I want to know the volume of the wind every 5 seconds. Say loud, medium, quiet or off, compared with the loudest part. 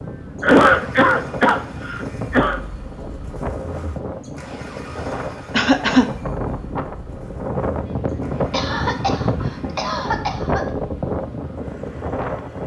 medium, loud, loud.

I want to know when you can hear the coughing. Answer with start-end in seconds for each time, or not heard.
0.4-2.6, 5.5-6.0, 8.5-10.7.